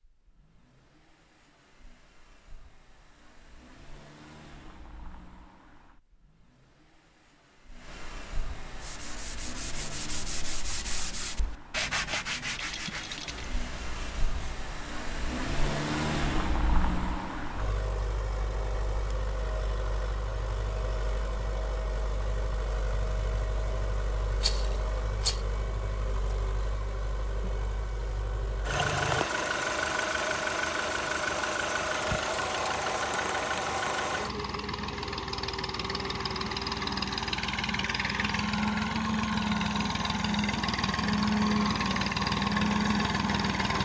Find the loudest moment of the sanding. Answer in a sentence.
The loudest moment of the sanding is at 12 seconds.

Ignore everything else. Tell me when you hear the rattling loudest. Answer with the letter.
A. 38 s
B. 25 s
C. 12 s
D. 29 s
B.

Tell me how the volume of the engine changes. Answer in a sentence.
The loudness of the engine goes up.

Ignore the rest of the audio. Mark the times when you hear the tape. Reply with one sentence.
You can't hear the tape here.